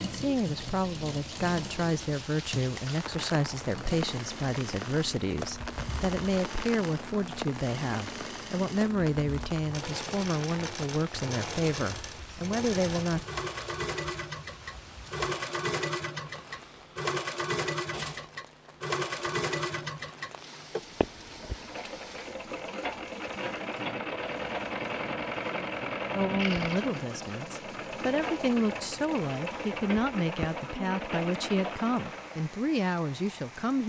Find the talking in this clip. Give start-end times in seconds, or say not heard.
0.1-13.2, 26.1-33.8.